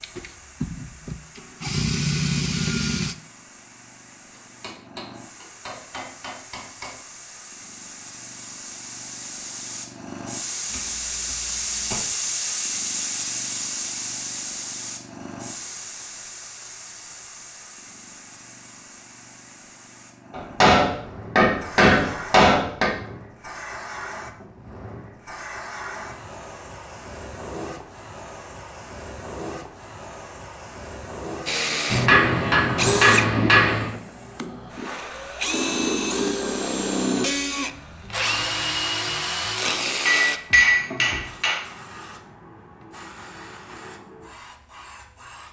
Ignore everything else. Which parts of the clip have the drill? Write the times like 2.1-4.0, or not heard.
0.0-3.1, 31.4-40.4.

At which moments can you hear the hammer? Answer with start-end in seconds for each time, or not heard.
4.3-7.0, 10.7-12.0, 20.3-22.9, 31.9-34.0, 40.0-41.6.